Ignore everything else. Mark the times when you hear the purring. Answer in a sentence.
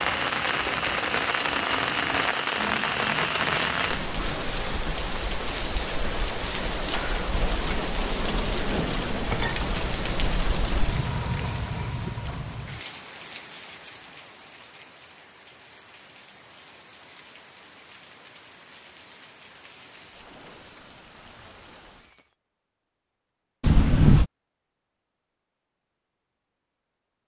The purring can't be heard in this clip.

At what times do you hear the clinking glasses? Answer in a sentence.
The clinking glasses can be heard from 9.3 to 10.9 s and from 23.6 to 24.2 s.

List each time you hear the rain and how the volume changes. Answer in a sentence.
You can hear the rain from 0.0 to 22.4 s, getting quieter.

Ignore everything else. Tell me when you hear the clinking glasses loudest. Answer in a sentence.
The volume of the clinking glasses peaks at 24 seconds.